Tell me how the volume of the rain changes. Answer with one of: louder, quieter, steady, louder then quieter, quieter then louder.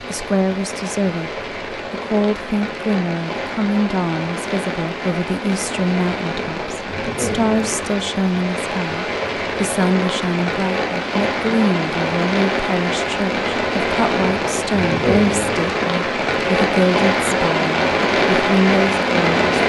louder.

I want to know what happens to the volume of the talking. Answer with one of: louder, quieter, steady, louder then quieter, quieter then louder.
steady.